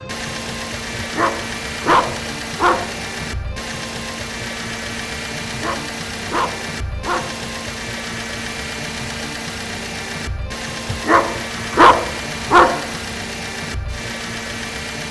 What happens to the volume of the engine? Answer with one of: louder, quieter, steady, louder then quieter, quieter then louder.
steady.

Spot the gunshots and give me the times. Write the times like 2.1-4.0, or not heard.
not heard.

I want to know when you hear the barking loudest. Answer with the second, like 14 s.
12 s.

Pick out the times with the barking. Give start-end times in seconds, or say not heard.
0.9-3.0, 5.5-7.3, 10.9-12.9.